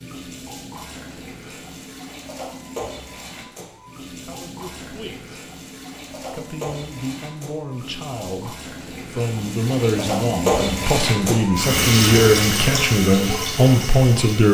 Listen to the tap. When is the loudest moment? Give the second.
12 s.